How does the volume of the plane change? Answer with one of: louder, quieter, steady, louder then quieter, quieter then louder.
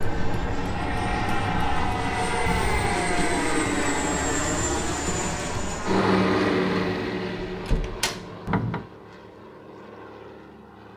quieter.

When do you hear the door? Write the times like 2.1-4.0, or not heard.
2.5-3.0, 7.5-8.8.